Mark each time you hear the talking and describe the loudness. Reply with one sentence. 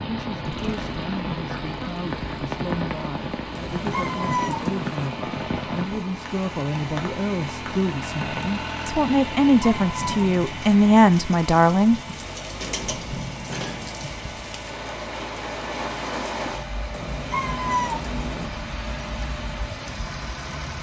You can hear the talking from 0.0 to 12.0 s, getting louder.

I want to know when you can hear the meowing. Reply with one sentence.
You can hear the meowing from 3.5 to 5.1 s, from 9.4 to 10.2 s and from 16.9 to 18.5 s.